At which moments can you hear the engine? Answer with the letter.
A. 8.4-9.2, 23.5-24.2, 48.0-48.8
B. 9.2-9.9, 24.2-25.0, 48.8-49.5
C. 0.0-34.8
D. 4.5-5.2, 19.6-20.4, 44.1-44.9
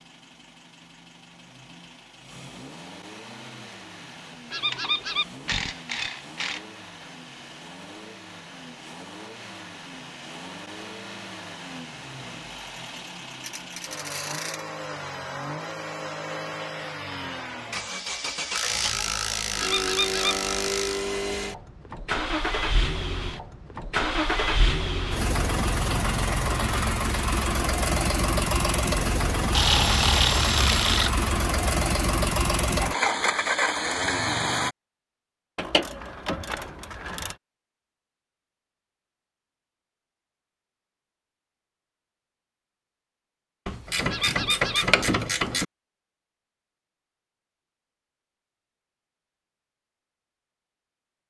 C.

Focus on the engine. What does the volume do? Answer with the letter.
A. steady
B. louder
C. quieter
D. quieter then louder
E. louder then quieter
B.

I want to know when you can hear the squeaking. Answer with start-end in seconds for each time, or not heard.
4.5-5.2, 19.6-20.4, 44.1-44.9.